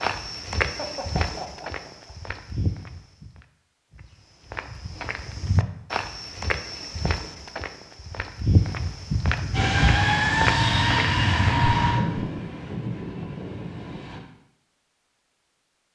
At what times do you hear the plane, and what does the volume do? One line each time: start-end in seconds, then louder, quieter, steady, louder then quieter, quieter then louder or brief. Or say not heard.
9.5-14.2 quieter.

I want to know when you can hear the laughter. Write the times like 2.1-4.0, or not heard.
0.7-2.1.